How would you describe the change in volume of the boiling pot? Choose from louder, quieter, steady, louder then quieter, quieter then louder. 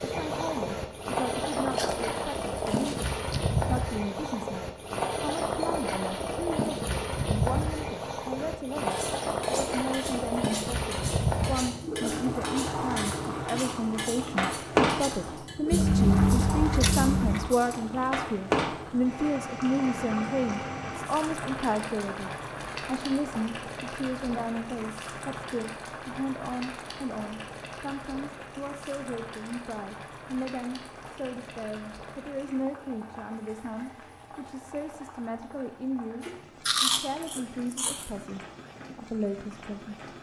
quieter.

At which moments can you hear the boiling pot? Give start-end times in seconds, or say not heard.
0.0-40.1.